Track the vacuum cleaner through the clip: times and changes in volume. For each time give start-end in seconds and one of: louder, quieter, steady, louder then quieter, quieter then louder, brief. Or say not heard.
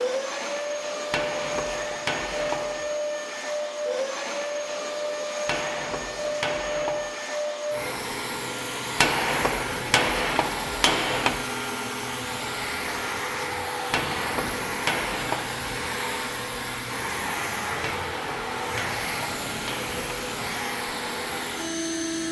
0.0-22.2 steady.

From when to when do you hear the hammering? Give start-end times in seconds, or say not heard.
1.1-2.9, 5.5-7.1, 9.0-11.4, 13.9-15.7, 17.8-19.9.